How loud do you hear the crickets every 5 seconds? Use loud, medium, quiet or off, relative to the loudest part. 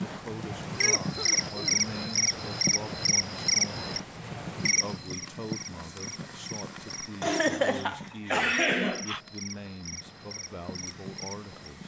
loud, quiet, quiet.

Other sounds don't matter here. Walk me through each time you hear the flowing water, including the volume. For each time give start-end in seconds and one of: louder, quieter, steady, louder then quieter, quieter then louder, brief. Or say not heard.
not heard.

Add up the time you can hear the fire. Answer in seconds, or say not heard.
12 s.